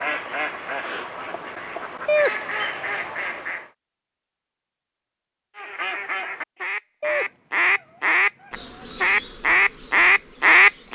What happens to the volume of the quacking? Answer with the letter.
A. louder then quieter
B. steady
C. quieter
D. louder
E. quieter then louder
D.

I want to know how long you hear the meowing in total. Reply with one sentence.
You can hear the meowing for 3 seconds altogether.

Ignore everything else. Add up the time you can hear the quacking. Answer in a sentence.
You can hear the quacking for 9 seconds altogether.